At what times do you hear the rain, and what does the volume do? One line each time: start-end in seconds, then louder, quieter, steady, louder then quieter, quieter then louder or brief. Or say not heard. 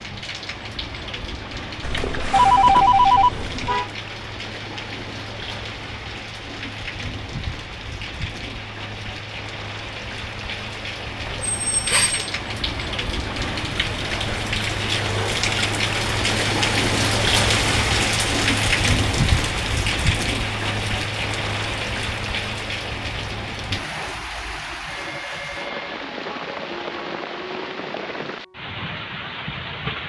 0.0-30.0 louder then quieter.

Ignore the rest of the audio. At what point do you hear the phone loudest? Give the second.
3 s.